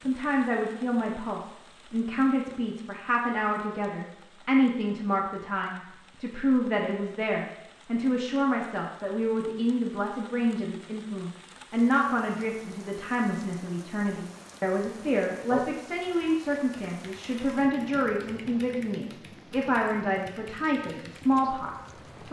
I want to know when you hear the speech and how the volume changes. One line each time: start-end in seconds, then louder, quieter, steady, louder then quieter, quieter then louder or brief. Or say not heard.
0.0-22.2 steady.